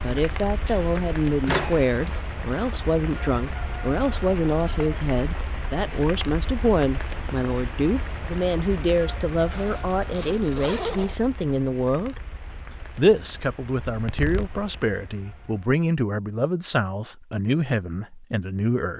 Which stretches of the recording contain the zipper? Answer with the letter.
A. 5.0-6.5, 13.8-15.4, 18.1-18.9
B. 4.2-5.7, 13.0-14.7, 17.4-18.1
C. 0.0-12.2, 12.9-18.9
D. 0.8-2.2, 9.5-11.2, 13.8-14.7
D.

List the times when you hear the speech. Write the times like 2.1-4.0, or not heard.
0.0-12.2, 12.9-18.9.